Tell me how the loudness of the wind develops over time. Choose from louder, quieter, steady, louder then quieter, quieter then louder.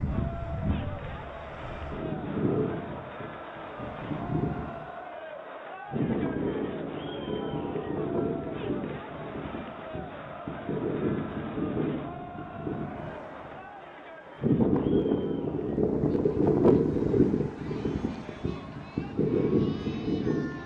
louder.